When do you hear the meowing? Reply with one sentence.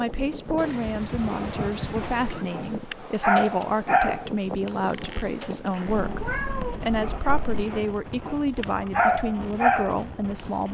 The meowing can be heard from 0.6 to 2.5 s and from 5.8 to 7.7 s.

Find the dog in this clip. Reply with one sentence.
The dog can be heard from 1.1 to 10.4 s.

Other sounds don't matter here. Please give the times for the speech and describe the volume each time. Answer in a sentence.
You can hear the speech from 0.0 to 10.6 s, at a steady volume.